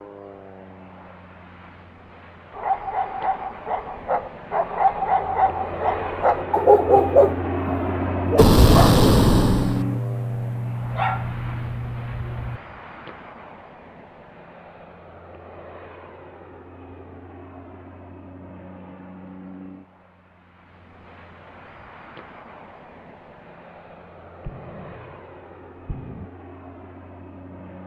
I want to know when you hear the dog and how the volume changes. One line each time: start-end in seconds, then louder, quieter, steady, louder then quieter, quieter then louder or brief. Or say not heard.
2.5-12.6 louder then quieter.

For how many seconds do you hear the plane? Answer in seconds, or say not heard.
28 s.